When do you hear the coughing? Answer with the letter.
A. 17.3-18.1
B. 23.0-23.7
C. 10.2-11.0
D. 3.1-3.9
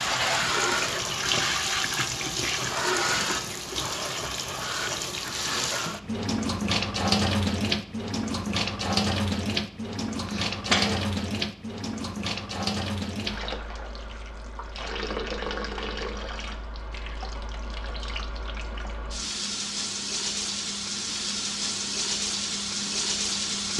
C.